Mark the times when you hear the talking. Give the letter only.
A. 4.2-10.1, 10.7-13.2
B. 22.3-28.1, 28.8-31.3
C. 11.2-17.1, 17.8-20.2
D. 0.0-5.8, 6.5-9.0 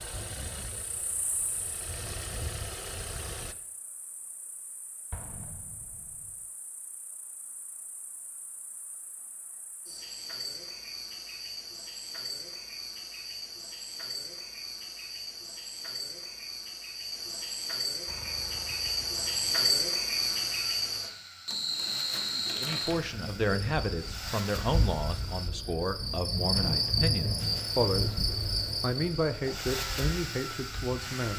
B.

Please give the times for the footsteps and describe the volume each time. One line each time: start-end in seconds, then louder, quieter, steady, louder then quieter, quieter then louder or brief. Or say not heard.
not heard.